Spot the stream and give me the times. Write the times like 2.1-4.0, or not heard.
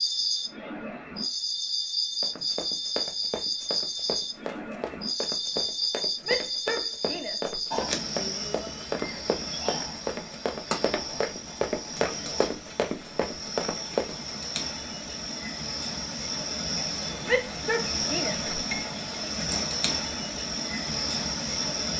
not heard.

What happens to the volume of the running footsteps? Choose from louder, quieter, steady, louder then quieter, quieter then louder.
louder.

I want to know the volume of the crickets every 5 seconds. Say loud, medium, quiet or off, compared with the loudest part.
loud, loud, medium, loud, loud.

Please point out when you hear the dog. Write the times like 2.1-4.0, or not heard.
not heard.